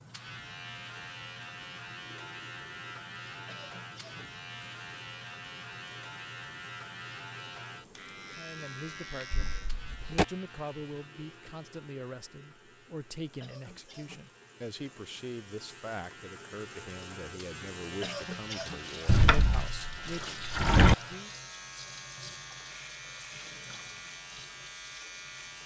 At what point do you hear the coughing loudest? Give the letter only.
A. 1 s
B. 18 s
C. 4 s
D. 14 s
B.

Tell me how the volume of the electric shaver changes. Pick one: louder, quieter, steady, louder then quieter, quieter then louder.
quieter then louder.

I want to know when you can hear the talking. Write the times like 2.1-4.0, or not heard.
8.3-21.3.